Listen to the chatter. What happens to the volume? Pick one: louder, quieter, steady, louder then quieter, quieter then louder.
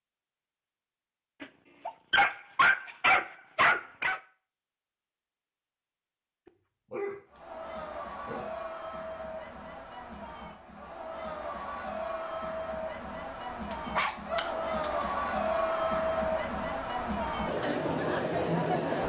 louder.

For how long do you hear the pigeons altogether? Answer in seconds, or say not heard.
not heard.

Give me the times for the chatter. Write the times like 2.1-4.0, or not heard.
7.3-19.0.